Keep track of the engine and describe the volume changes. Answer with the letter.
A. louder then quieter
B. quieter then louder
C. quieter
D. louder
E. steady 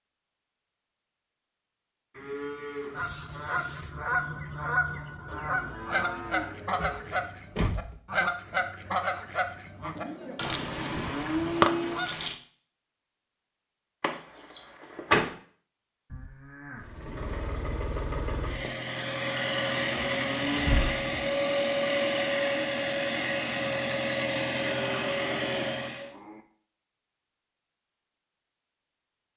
D.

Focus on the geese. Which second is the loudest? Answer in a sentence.
The loudest moment of the geese is at 12 seconds.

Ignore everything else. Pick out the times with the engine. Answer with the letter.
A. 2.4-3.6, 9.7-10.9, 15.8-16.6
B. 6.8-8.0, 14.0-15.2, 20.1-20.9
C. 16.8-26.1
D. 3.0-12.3
C.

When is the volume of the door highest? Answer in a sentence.
The volume of the door peaks at 15 seconds.